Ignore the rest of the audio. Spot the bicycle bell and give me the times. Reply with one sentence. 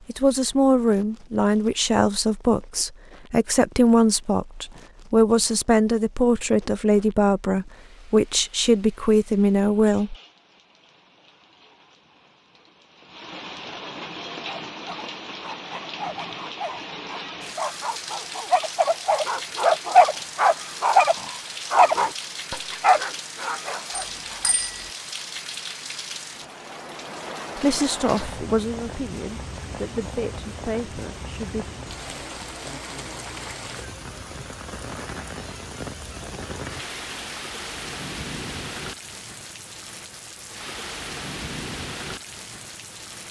The bicycle bell can be heard from 23.9 to 24.9 s.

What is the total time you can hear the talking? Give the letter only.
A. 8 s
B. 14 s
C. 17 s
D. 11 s
B.